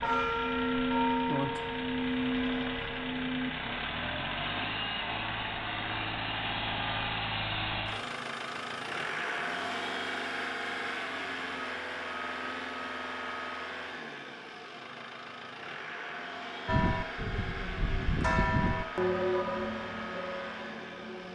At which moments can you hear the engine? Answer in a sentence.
You can hear the engine from 0.0 to 21.3 s.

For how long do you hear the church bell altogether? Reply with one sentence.
The church bell can be heard for 8 seconds in total.